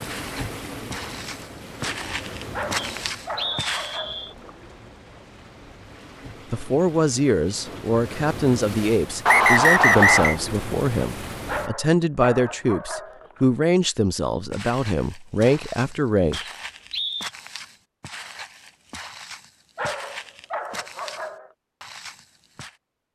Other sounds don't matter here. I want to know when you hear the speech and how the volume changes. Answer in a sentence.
You can hear the speech from 6.5 to 16.4 s, at a steady volume.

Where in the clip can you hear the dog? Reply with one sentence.
You can hear the dog from 2.5 to 4.5 s, from 11.4 to 13.4 s and from 19.8 to 21.5 s.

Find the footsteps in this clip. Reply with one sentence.
You can hear the footsteps from 0.0 to 4.0 s and from 14.5 to 22.8 s.